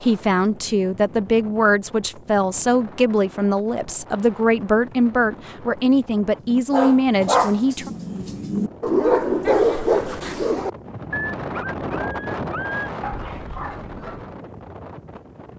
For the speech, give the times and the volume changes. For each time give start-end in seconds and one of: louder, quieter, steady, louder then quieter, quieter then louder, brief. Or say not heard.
0.0-7.9 steady.